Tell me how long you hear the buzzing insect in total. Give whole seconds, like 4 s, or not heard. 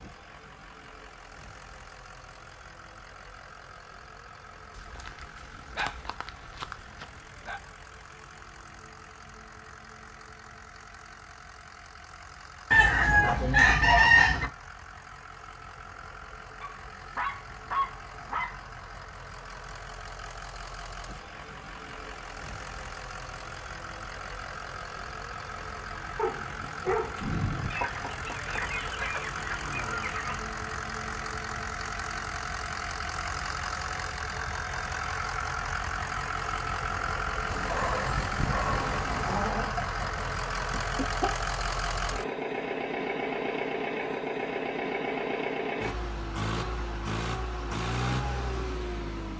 not heard.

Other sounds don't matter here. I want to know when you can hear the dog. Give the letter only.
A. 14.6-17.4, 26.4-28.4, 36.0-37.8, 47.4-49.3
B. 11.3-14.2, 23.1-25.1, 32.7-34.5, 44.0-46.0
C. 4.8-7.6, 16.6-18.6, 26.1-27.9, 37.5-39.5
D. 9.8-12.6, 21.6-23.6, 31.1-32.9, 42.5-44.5
C.